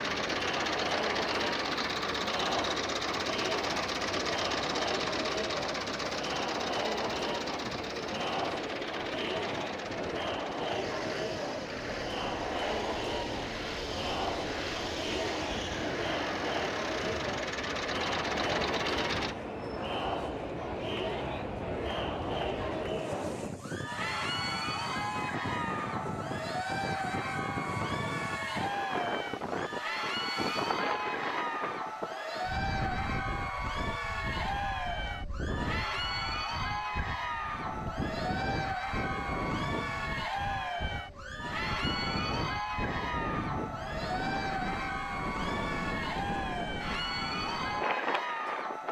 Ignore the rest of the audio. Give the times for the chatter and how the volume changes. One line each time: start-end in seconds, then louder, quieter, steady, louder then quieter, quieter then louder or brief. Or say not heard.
0.0-48.8 steady.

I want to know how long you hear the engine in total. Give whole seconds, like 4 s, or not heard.
19 s.